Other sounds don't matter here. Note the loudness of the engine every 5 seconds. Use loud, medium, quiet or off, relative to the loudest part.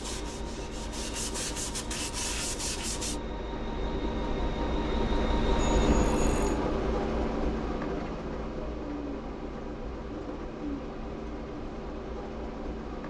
medium, loud, medium.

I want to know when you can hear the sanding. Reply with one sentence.
The sanding can be heard from 0.0 to 3.2 s.